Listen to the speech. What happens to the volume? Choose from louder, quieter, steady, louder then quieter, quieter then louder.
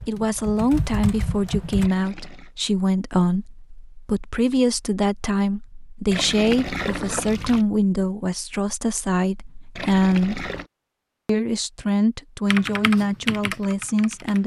steady.